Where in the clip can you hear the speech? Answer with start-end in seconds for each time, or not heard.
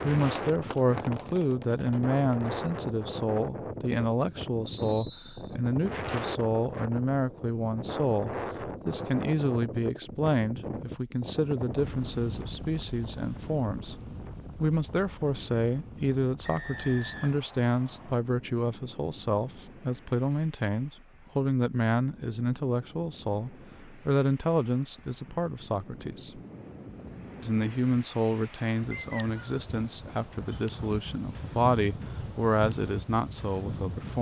0.0-13.9, 14.6-26.4, 27.4-34.1.